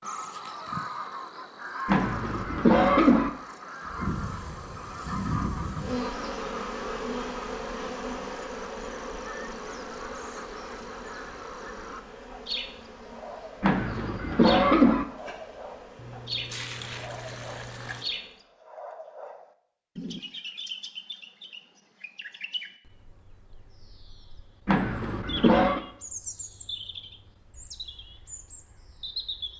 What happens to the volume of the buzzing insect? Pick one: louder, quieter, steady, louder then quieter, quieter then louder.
quieter.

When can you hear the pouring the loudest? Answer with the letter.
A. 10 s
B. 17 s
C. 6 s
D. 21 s
B.